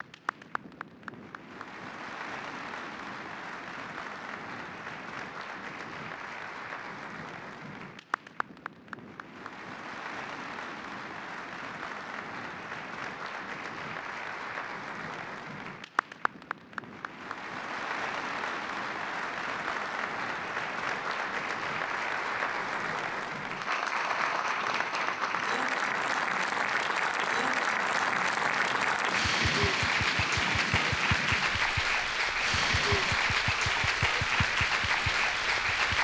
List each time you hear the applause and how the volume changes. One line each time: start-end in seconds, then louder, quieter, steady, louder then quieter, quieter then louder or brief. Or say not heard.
0.0-35.9 louder.